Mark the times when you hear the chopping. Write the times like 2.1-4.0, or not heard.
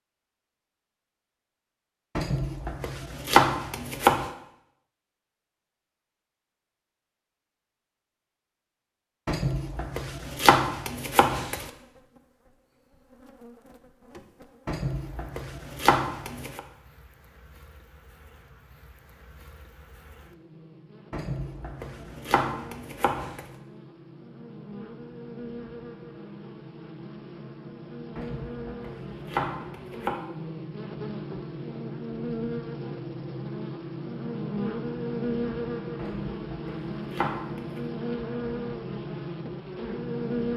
2.1-4.2, 9.2-11.7, 14.7-16.6, 21.1-23.4, 28.1-30.1, 36.0-37.9.